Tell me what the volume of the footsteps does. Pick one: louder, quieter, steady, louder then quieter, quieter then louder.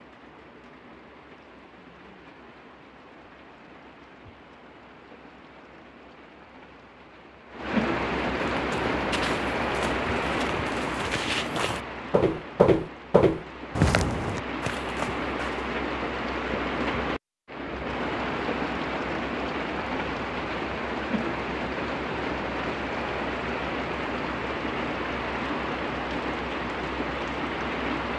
louder then quieter.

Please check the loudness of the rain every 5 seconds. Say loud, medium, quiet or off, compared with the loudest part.
quiet, loud, loud, loud, loud, loud.